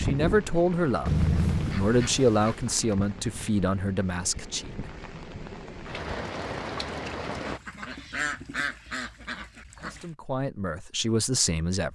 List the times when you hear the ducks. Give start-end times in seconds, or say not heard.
1.1-2.6, 7.5-10.1.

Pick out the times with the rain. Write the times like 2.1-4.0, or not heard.
0.0-7.6.